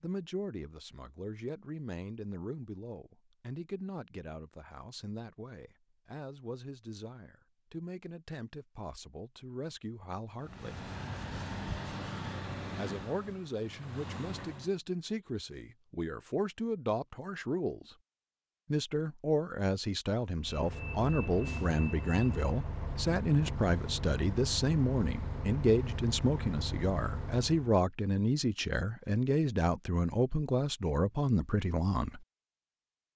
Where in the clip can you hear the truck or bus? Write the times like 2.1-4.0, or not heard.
10.3-14.8, 20.4-27.8.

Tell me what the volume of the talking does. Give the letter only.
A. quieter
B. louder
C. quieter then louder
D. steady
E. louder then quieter
B.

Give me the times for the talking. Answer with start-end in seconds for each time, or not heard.
0.0-10.8, 12.8-17.9, 18.7-32.2.